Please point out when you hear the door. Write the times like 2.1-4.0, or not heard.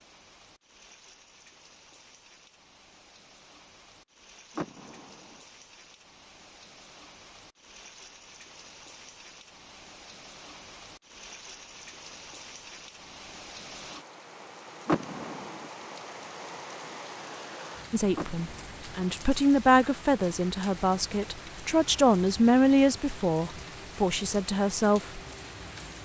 4.5-5.4, 14.8-15.7, 18.1-18.8.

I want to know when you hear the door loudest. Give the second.
15 s.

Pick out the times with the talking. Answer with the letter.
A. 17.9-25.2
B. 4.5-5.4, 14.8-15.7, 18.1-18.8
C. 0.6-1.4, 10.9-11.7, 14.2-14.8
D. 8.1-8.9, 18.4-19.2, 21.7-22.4
A.